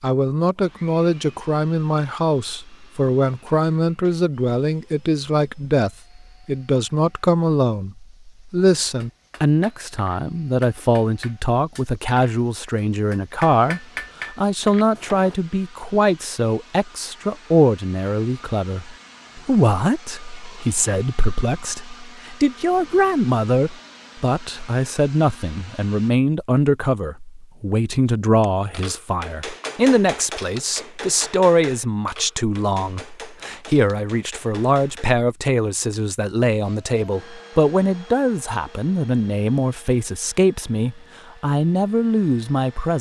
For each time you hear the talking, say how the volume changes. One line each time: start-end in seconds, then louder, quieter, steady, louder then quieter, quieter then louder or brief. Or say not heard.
0.0-42.9 steady.